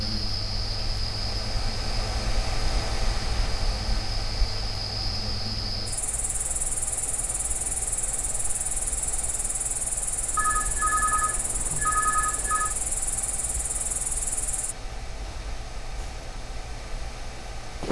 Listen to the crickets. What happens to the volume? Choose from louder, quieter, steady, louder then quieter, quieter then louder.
steady.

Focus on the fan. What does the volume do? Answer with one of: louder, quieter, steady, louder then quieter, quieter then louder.
quieter.